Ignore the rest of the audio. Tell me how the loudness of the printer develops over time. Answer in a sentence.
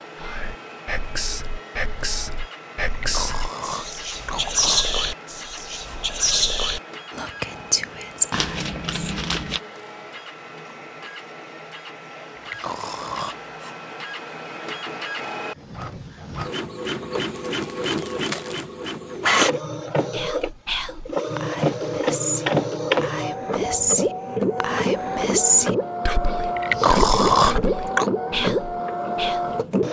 The loudness of the printer goes up.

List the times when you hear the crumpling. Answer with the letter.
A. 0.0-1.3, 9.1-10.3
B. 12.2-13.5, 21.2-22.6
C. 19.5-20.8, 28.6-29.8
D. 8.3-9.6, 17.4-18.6
D.